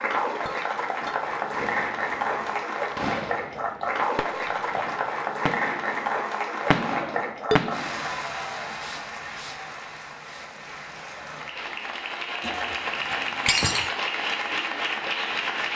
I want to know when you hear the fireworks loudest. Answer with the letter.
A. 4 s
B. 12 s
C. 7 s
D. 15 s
C.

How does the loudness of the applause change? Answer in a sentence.
The volume of the applause goes down, then up.